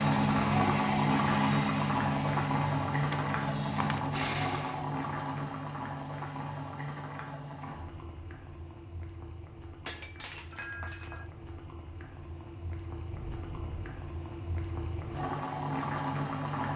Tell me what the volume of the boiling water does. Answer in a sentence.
The loudness of the boiling water goes down, then up.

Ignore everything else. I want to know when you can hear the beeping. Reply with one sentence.
The beeping can be heard from 13.1 to 14.0 s.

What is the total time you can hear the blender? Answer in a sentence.
You can hear the blender for 5 seconds altogether.